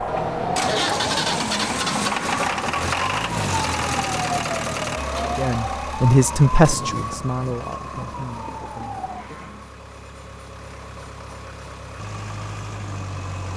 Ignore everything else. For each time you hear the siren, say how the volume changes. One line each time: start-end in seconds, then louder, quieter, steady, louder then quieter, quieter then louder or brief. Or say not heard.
0.0-9.8 quieter.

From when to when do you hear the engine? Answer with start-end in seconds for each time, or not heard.
0.0-13.5.